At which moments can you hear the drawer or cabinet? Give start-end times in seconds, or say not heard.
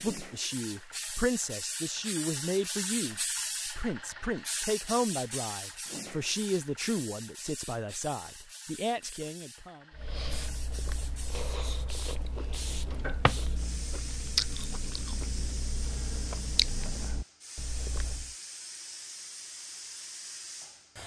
12.9-13.3.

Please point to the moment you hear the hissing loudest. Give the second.
3 s.